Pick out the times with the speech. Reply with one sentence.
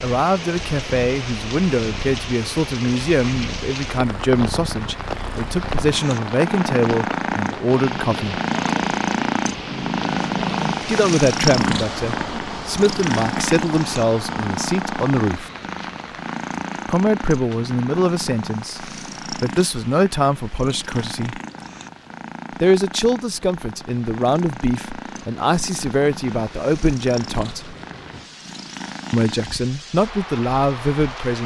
You can hear the speech from 0.0 to 8.3 s, from 10.8 to 15.5 s, from 16.9 to 21.4 s, from 22.6 to 27.7 s and from 29.1 to 31.4 s.